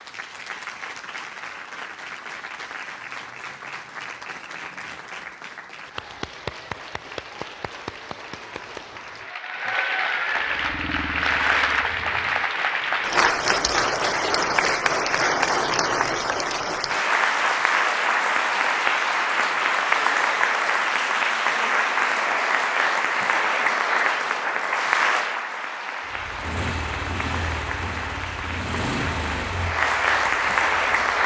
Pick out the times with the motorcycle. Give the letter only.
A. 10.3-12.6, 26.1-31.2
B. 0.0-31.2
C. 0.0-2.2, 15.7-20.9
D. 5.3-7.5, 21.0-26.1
A.